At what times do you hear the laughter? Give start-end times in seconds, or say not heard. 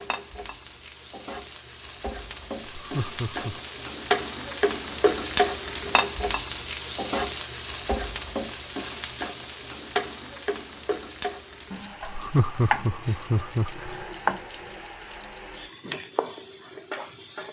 2.8-3.6, 12.0-13.9.